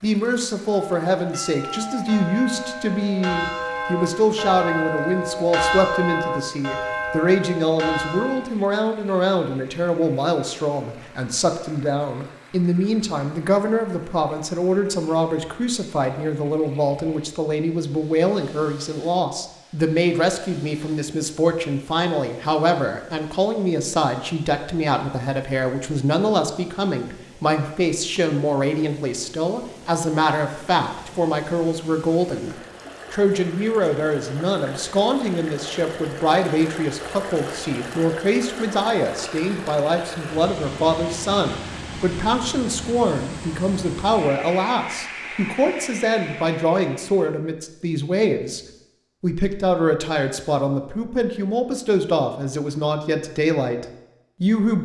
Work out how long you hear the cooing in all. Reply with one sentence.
You can't hear the cooing here.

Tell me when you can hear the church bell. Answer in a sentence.
You can hear the church bell from 0.7 to 8.4 s.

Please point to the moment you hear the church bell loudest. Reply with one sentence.
The volume of the church bell peaks at 6 seconds.